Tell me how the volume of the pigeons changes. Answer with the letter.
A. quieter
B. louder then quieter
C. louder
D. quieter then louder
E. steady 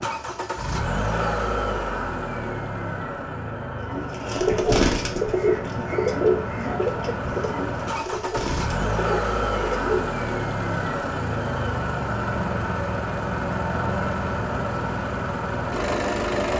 A.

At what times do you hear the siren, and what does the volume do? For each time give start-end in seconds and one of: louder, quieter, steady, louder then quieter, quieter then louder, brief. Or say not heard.
not heard.